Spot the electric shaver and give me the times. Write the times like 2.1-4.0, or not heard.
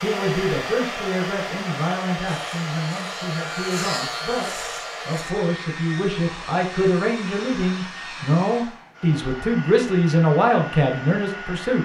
2.2-5.3.